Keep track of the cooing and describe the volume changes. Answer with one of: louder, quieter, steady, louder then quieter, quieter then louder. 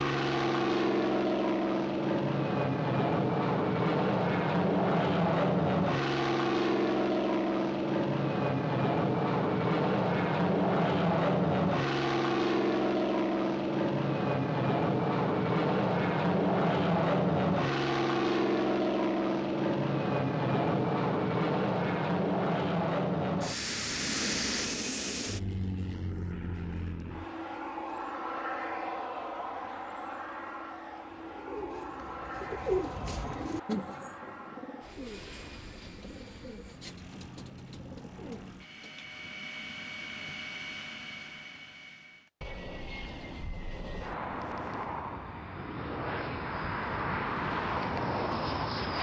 louder then quieter.